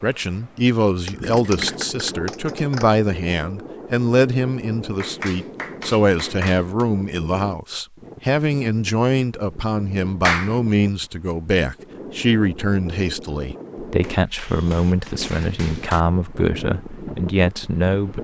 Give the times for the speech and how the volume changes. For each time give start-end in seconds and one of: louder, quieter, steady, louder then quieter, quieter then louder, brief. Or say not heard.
0.0-18.1 steady.